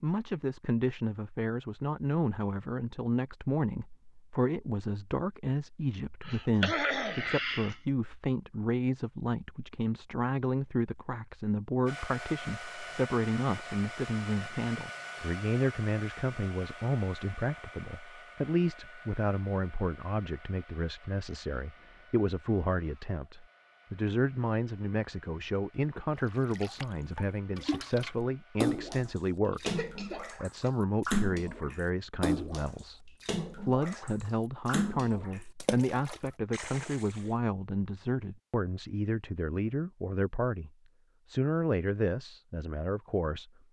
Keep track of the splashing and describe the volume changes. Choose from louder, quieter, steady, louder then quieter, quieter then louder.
louder then quieter.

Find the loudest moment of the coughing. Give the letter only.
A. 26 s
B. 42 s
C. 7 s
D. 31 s
C.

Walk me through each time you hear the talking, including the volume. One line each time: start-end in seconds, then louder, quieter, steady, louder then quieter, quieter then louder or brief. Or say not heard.
0.0-43.5 steady.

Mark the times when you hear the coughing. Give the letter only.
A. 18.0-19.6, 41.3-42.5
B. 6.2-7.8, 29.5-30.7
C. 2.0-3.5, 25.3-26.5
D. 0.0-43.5
B.